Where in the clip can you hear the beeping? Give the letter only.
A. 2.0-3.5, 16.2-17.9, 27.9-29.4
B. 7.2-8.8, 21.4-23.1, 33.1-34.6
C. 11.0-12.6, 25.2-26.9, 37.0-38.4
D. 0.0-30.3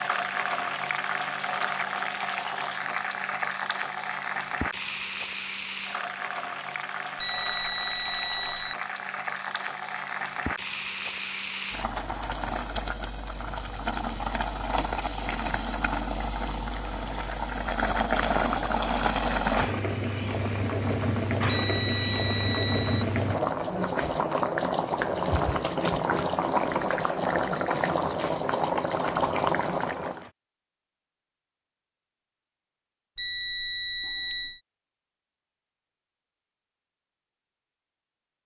B.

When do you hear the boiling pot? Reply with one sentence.
You can hear the boiling pot from 0.0 to 30.3 s.